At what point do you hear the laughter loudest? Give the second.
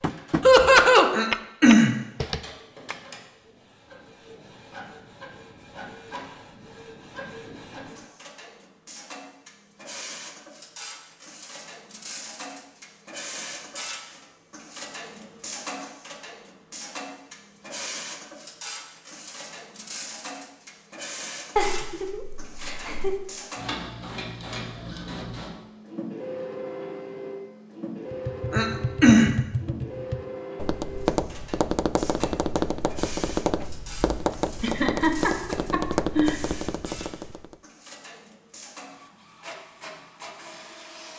1 s.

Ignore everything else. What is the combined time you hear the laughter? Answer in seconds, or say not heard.
4 s.